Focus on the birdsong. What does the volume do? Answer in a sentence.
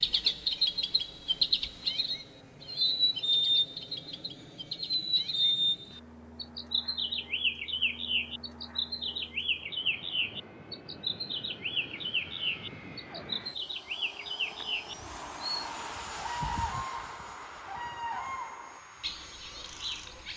The volume of the birdsong goes down.